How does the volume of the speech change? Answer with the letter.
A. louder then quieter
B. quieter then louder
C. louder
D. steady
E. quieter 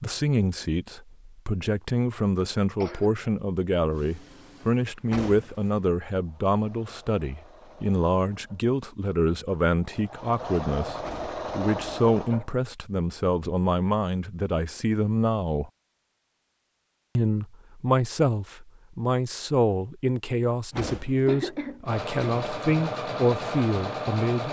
D.